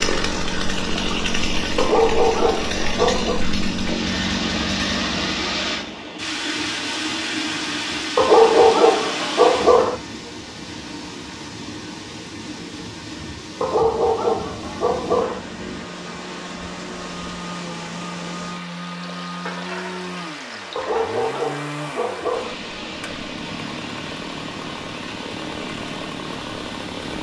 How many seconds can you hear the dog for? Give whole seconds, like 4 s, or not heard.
7 s.